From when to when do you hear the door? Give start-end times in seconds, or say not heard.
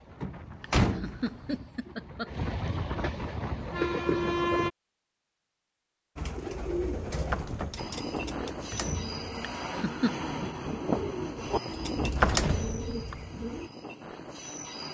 0.2-1.3, 7.1-8.3, 11.9-13.2.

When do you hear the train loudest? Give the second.
4 s.